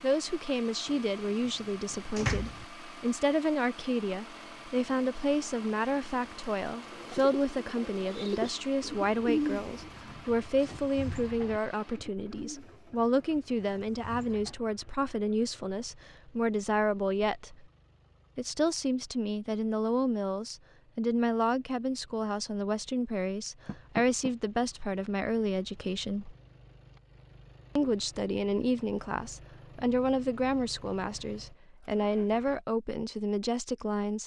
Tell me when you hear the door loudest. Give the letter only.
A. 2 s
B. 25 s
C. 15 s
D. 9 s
A.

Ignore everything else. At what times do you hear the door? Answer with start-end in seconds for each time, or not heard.
0.8-2.6, 23.6-24.3.